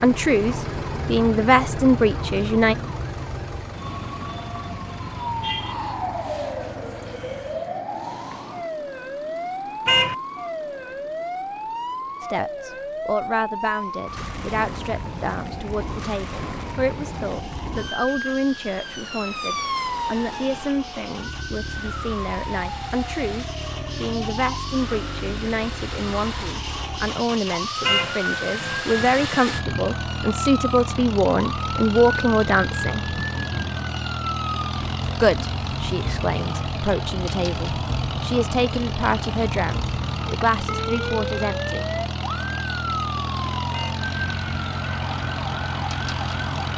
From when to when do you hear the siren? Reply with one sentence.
You can hear the siren from 0.0 to 46.7 s.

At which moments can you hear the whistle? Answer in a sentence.
The whistle can't be heard in this clip.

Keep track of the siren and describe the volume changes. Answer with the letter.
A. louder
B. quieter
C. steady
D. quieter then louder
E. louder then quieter
C.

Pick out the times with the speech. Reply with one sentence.
You can hear the speech from 0.0 to 2.8 s, from 12.2 to 33.1 s and from 35.2 to 41.9 s.